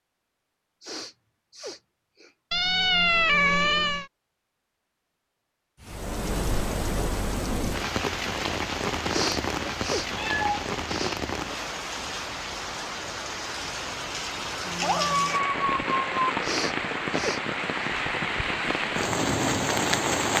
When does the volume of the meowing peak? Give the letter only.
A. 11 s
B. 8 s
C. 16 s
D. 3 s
D.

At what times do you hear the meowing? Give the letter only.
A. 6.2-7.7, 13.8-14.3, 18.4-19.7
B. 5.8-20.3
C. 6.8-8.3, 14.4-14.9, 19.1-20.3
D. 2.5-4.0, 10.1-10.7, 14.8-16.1
D.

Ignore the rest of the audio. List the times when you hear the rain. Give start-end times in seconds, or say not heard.
5.8-20.3.